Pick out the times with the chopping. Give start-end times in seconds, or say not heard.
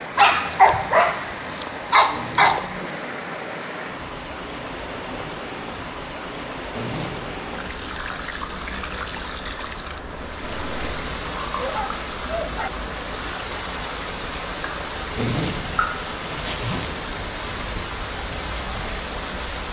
not heard.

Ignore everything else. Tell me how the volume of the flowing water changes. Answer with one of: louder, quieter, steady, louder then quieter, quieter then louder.
steady.